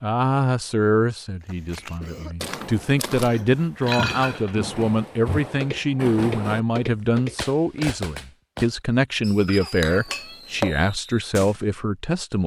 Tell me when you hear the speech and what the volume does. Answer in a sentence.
You can hear the speech from 0.0 to 12.4 s, at a steady volume.